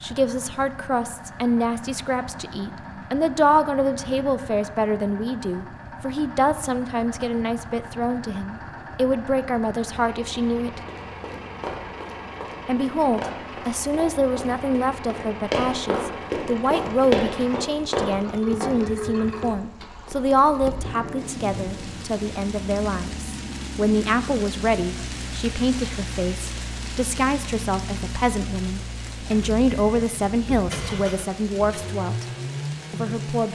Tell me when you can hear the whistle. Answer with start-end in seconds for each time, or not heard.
not heard.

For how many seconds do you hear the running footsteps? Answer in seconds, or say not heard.
8 s.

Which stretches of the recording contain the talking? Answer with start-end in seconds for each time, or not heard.
0.0-10.8, 12.7-32.2, 32.9-33.5.